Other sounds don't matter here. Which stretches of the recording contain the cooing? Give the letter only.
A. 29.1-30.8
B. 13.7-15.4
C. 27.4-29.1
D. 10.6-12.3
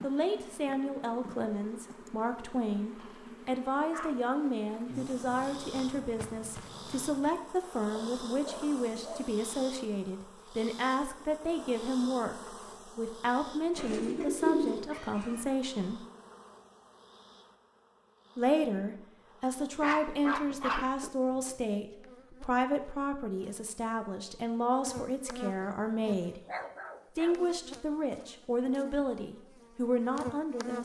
B.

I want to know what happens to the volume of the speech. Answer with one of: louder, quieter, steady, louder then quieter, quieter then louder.
steady.